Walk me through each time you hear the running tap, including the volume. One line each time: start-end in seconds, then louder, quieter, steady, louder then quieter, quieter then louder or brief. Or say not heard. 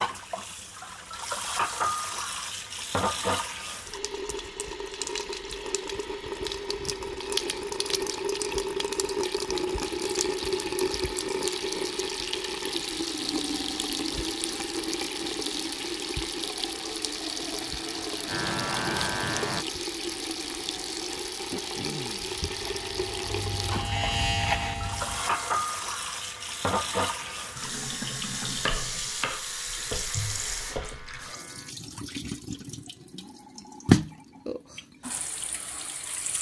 0.0-36.3 steady.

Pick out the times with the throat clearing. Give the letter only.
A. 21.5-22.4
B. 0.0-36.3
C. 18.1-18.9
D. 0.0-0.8
A.